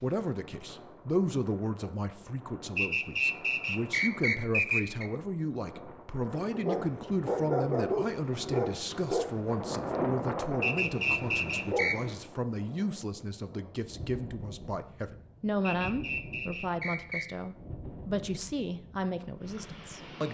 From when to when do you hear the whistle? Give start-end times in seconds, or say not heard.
2.8-5.1, 10.6-11.9, 15.7-17.2.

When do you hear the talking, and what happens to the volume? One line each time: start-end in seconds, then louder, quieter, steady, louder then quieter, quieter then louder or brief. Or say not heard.
0.0-20.3 steady.